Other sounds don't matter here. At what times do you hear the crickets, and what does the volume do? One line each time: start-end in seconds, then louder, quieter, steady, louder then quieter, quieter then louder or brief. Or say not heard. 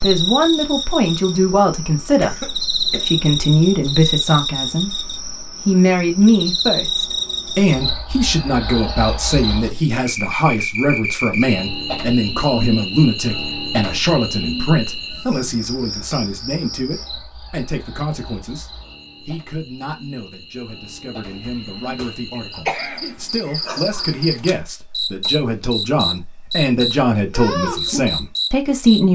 0.0-29.0 quieter then louder.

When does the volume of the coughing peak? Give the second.
23 s.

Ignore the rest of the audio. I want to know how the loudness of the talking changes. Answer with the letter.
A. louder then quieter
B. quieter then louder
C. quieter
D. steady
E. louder
B.